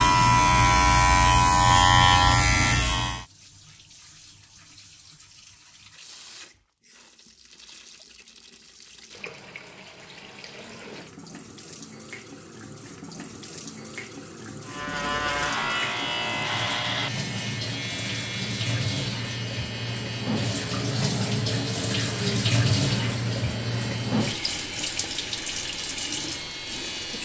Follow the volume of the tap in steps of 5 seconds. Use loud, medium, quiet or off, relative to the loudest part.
quiet, quiet, quiet, medium, loud, medium.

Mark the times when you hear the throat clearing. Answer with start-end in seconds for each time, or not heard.
not heard.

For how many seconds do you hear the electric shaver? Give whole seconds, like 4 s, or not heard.
16 s.